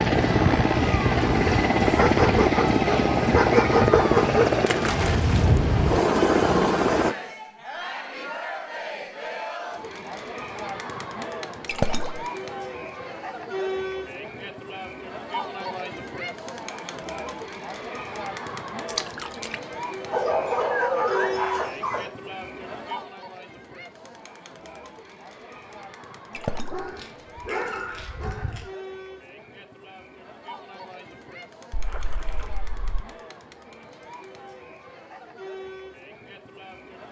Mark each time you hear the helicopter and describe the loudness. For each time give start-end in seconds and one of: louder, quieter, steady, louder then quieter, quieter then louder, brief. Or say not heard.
0.0-7.2 steady.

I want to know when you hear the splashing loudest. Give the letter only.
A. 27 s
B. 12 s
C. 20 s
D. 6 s
B.